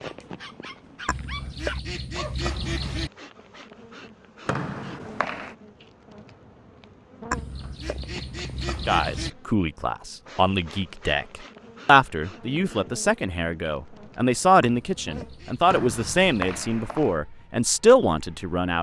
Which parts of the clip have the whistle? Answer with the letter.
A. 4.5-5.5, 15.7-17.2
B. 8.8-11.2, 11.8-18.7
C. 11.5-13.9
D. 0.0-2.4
A.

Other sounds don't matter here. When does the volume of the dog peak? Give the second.
2 s.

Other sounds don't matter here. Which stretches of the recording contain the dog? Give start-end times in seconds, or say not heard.
0.0-2.4.